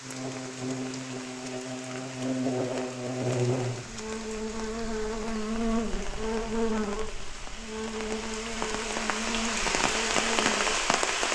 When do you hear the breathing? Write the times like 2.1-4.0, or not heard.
not heard.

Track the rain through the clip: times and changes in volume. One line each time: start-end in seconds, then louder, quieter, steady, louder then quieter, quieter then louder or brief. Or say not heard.
0.0-11.3 louder.